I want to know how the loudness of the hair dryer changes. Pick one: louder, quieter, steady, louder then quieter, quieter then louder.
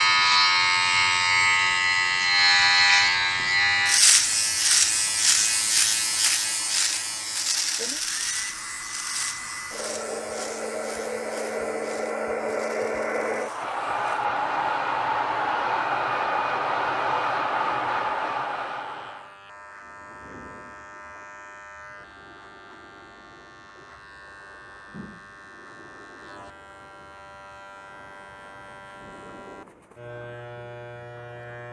louder.